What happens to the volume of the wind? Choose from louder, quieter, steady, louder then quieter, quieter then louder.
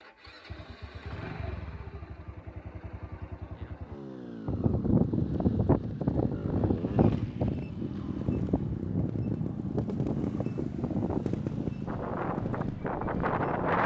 quieter.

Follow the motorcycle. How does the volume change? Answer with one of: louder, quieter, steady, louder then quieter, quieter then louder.
louder.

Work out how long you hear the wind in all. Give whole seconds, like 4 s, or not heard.
9 s.